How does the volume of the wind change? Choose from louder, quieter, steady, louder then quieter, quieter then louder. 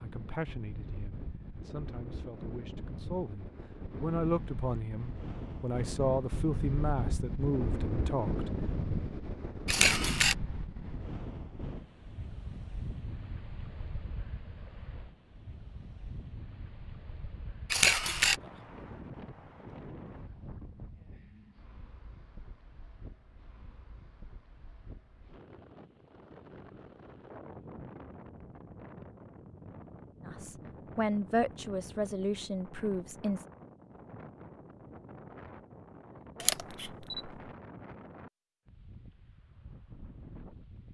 quieter.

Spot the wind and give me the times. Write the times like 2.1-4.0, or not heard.
0.0-40.8.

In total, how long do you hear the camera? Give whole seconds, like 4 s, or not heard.
2 s.